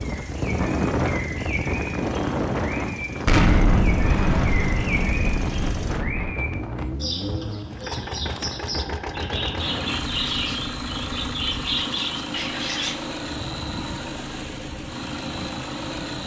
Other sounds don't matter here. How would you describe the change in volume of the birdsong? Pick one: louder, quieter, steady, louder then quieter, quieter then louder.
louder.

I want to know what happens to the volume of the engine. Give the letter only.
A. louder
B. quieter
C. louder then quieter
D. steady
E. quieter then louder
A.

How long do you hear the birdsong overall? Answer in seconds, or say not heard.
13 s.